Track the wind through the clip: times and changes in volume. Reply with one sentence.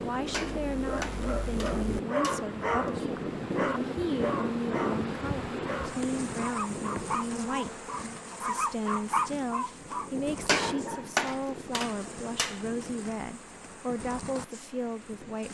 The wind can be heard from 0.0 to 15.4 s, getting quieter.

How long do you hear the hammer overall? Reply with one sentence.
You can hear the hammer for 5 seconds altogether.